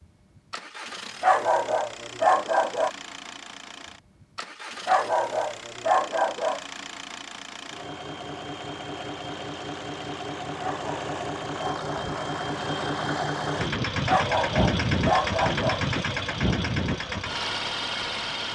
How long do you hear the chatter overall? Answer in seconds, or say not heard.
not heard.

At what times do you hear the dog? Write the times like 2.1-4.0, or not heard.
1.2-2.9, 4.8-6.7, 10.6-12.2, 14.1-15.8.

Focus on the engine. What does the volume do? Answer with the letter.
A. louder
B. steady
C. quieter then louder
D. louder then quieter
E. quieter
A.